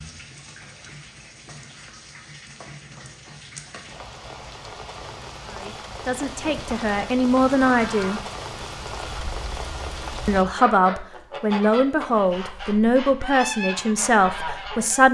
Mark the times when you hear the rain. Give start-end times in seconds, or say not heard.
0.0-10.4.